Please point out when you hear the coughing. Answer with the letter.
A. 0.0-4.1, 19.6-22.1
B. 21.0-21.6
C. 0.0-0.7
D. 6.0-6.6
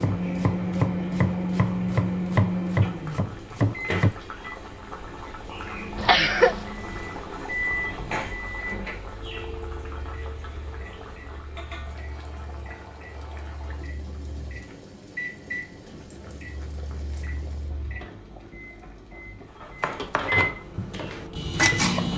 D.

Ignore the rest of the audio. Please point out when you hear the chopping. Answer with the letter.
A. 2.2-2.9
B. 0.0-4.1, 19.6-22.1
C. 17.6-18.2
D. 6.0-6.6
B.